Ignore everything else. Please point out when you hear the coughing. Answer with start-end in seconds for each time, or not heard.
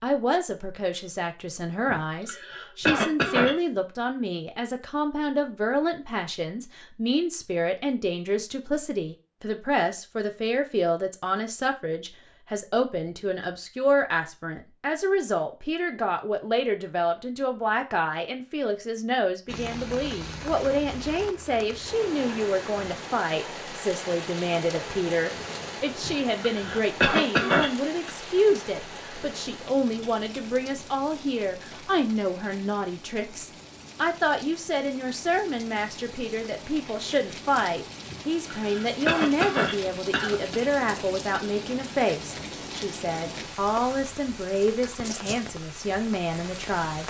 1.9-3.5, 26.0-28.1, 38.1-40.6.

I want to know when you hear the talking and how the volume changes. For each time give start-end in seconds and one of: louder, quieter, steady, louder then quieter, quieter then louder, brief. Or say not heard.
0.0-47.0 steady.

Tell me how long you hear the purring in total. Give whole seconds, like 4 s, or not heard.
not heard.